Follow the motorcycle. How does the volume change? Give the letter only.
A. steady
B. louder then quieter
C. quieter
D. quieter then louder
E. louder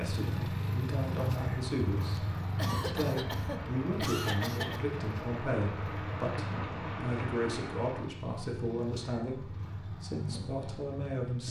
C.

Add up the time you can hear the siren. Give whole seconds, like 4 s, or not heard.
not heard.